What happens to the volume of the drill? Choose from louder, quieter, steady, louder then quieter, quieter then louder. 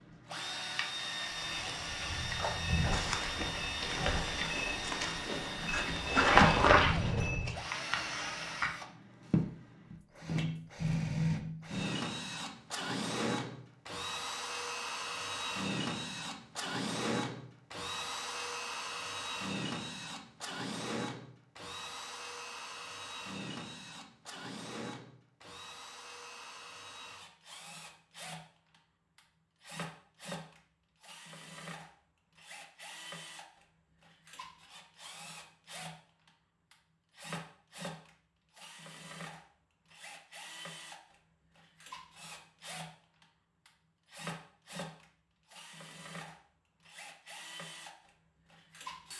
quieter.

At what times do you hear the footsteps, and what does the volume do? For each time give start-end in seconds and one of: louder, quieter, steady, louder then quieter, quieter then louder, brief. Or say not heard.
1.3-7.6 louder.